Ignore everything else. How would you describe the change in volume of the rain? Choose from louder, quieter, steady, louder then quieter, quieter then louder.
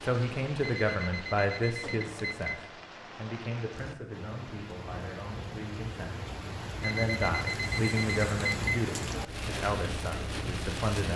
louder.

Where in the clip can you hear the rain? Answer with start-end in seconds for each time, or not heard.
0.0-11.1.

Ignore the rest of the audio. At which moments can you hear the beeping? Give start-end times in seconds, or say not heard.
0.6-2.6, 6.8-8.6.